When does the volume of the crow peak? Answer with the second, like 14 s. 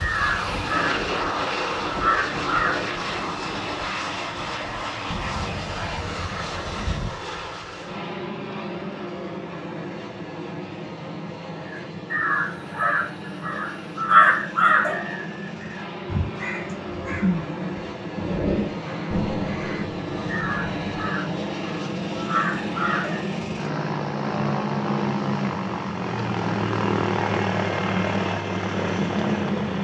14 s.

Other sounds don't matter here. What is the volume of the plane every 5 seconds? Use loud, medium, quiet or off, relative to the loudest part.
loud, medium, medium, medium, loud, loud.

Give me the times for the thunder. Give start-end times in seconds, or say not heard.
5.1-7.1, 19.1-20.9.